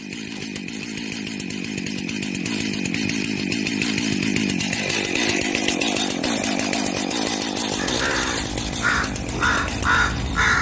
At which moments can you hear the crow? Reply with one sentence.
The crow can be heard from 7.8 to 10.5 s.